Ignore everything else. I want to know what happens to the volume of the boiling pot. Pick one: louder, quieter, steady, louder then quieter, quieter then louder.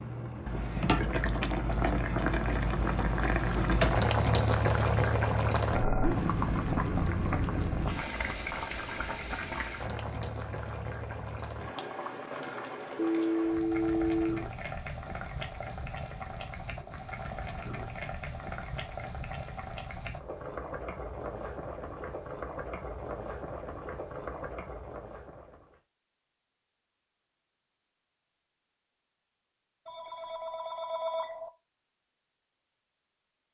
quieter.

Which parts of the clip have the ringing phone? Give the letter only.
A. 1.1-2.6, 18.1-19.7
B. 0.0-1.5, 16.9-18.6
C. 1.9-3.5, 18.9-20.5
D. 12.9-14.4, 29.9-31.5
D.